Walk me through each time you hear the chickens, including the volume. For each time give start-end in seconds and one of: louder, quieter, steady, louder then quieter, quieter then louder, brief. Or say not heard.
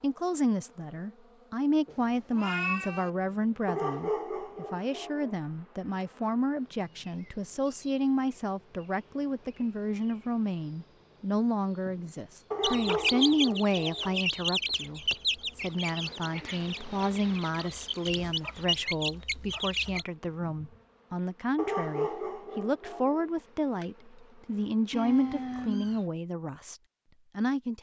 12.6-20.1 quieter then louder.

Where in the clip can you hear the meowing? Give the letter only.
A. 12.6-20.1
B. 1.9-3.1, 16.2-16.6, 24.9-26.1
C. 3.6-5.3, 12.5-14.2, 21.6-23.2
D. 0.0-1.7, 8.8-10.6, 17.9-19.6
B.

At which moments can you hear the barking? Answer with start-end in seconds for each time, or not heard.
3.6-5.3, 12.5-14.2, 21.6-23.2.